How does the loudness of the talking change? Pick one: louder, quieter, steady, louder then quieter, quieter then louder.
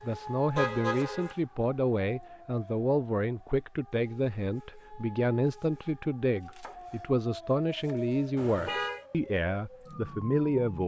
steady.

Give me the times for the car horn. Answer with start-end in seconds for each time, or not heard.
0.6-1.4, 8.3-9.1.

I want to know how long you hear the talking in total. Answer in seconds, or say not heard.
11 s.